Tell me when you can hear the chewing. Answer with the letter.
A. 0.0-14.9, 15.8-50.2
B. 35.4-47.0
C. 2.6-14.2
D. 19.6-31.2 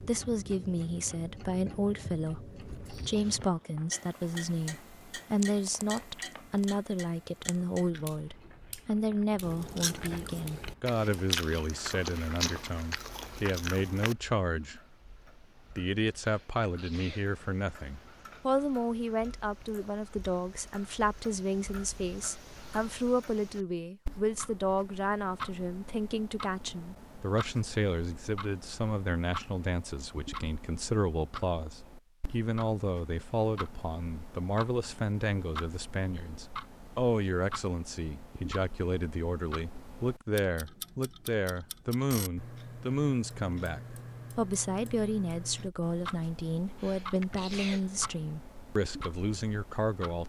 C.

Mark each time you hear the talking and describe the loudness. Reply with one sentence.
The talking can be heard from 0.0 to 14.9 s, at a steady volume; and from 15.8 to 50.2 s, at a steady volume.